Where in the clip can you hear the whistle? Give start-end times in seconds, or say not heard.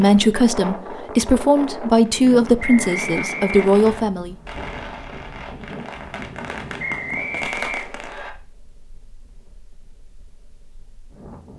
2.6-4.0, 6.8-8.3.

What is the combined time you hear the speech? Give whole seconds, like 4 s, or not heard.
4 s.